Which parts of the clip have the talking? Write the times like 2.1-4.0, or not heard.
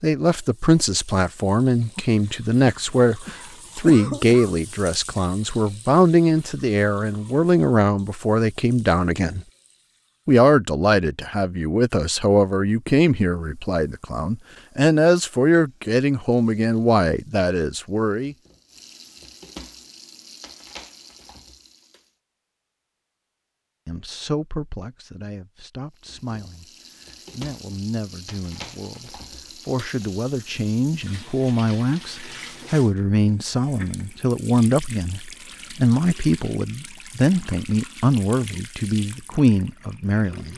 0.0-9.4, 10.2-18.4, 23.9-40.5.